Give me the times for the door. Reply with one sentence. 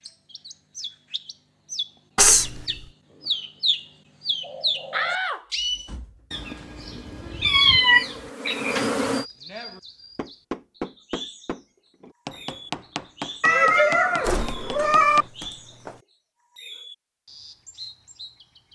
You can hear the door from 4.9 to 6.2 s and from 14.2 to 16.0 s.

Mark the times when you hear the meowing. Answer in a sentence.
You can hear the meowing from 2.1 to 2.6 s, from 7.4 to 8.8 s and from 13.4 to 15.2 s.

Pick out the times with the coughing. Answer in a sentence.
The coughing can't be heard in this clip.